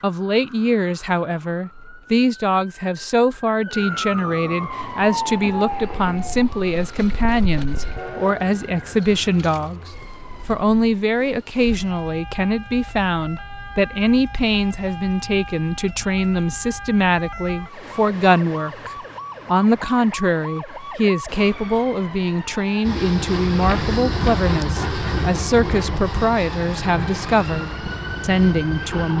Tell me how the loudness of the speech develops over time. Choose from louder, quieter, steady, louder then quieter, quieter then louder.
steady.